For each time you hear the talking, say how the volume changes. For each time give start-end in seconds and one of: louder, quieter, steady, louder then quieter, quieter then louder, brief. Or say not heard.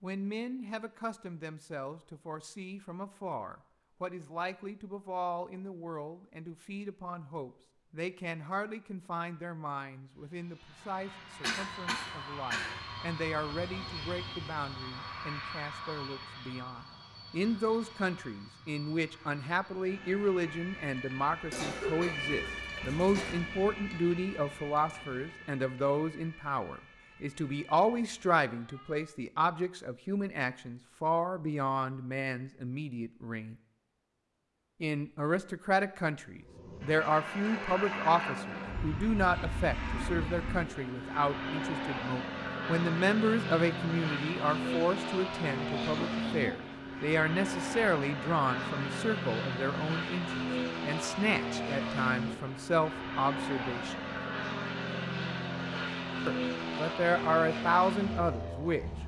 0.0-33.5 louder
34.8-54.0 steady
56.2-58.9 brief.